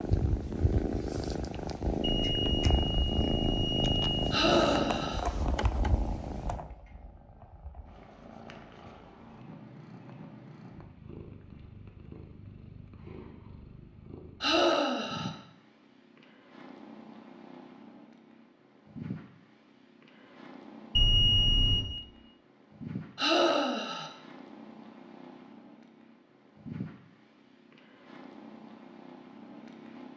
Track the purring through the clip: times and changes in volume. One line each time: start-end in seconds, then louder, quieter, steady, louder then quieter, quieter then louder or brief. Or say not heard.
0.0-30.1 quieter.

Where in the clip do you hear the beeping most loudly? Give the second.
21 s.